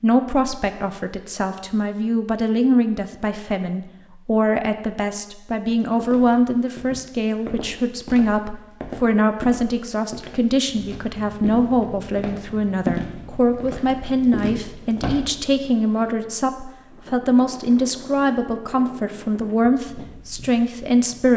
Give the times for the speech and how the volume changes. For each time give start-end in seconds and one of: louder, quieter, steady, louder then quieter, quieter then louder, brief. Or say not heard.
0.0-21.3 steady.